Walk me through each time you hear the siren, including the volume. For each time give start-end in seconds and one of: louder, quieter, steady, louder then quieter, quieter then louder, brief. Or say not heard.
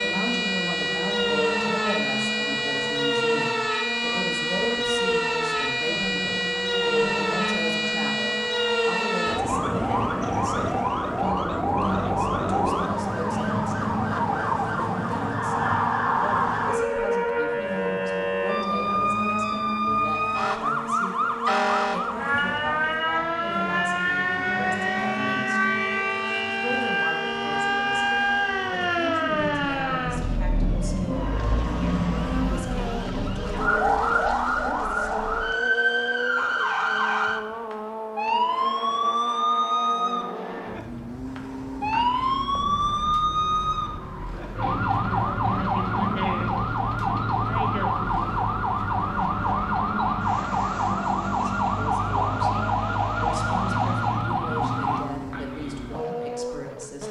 0.0-55.0 steady.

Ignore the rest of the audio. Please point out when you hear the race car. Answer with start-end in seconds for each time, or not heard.
0.0-57.0.